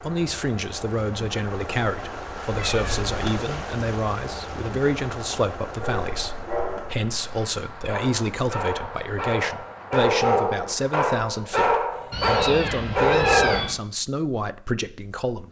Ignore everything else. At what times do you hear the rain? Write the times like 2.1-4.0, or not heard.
0.0-11.1.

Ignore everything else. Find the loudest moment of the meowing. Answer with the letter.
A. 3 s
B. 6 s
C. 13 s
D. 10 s
C.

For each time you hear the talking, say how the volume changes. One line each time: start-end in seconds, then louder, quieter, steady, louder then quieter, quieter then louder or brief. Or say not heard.
0.0-15.4 steady.